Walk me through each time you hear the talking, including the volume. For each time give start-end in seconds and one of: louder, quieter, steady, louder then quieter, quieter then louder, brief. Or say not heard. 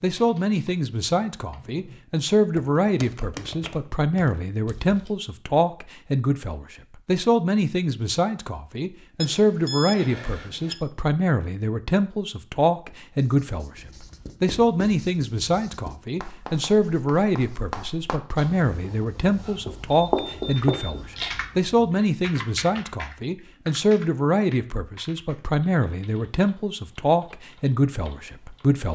0.0-28.9 steady.